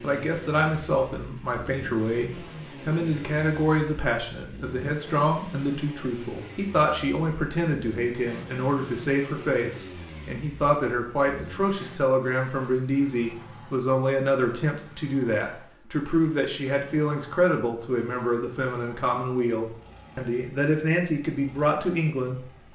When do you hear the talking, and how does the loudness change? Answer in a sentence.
You can hear the talking from 0.0 to 22.4 s, at a steady volume.